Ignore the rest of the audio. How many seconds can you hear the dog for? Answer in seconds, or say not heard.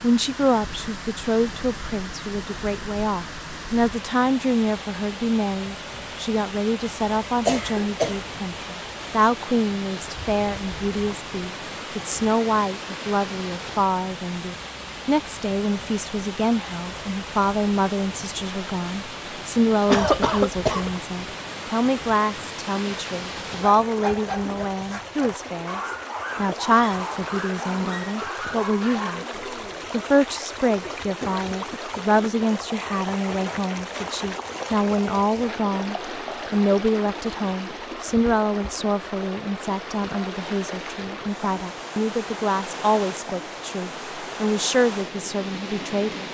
6 s.